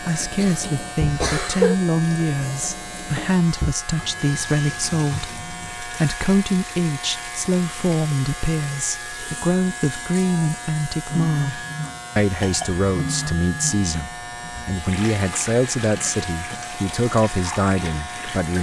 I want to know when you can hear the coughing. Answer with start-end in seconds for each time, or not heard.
0.3-1.8, 12.3-12.8.